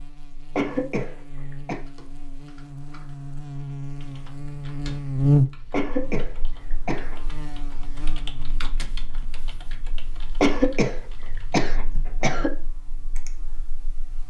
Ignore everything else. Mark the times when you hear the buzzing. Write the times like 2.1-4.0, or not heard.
0.0-14.2.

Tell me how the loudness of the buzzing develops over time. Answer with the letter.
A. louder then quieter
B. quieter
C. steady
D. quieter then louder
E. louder
A.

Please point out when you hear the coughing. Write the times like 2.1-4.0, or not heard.
0.6-1.8, 5.7-7.2, 10.4-12.5.